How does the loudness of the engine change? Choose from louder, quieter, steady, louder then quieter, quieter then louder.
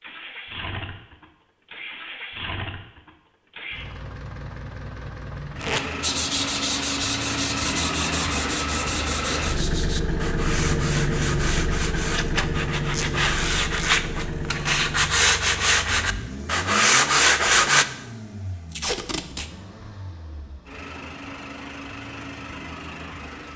louder then quieter.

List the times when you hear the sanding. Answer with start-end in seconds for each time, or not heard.
6.0-17.9.